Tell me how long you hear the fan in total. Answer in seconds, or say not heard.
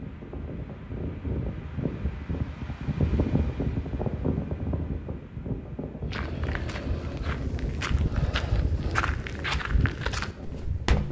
11 s.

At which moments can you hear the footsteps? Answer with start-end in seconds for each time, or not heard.
6.0-11.0.